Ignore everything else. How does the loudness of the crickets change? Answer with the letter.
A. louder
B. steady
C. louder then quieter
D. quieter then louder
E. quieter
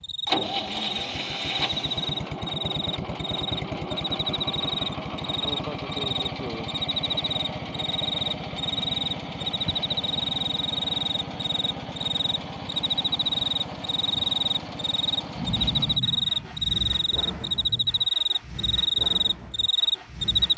A.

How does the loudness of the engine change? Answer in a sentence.
The loudness of the engine goes down.